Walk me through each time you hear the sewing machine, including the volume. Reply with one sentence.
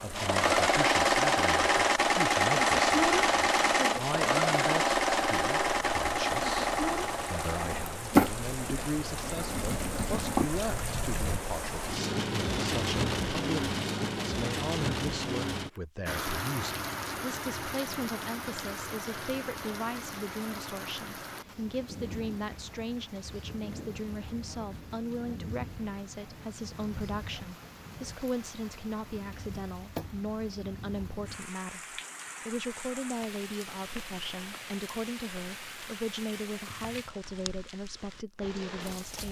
You can hear the sewing machine from 0.1 to 10.5 s, getting quieter.